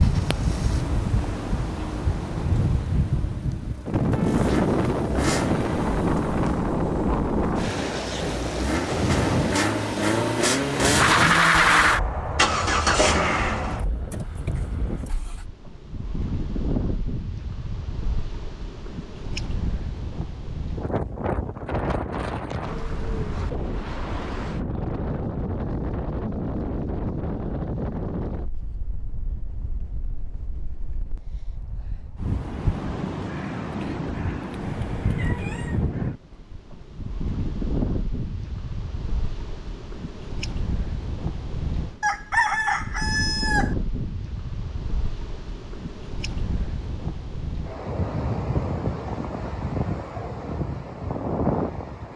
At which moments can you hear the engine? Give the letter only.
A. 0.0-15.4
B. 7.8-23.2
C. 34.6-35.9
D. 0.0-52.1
A.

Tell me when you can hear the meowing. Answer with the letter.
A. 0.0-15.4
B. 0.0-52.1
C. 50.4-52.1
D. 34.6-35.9
D.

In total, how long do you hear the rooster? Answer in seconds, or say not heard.
2 s.